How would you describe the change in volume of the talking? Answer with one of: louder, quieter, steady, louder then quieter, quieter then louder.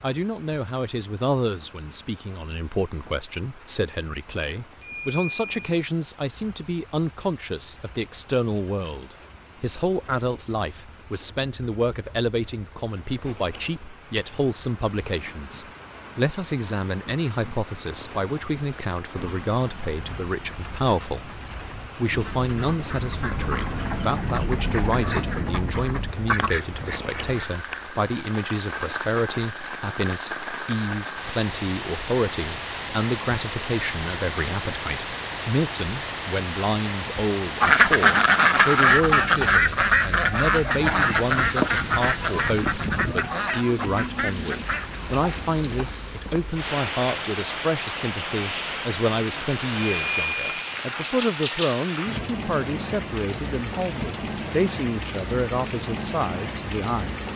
steady.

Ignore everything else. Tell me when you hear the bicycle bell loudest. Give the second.
50 s.